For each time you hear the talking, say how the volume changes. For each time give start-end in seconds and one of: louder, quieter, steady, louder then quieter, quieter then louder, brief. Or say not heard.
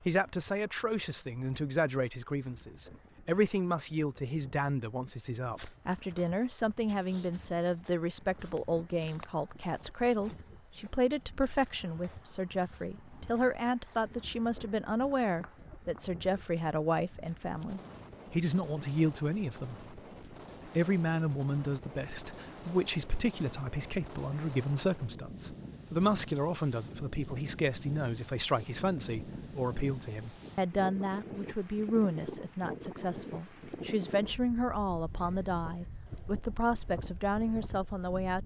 0.1-19.8 steady
20.6-38.4 steady.